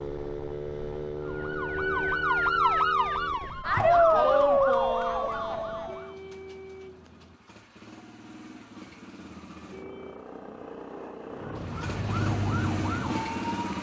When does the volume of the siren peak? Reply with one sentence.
The volume of the siren peaks at 4 seconds.